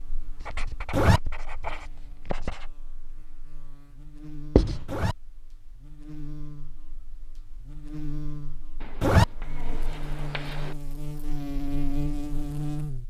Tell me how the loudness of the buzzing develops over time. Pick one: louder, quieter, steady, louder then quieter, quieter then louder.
louder.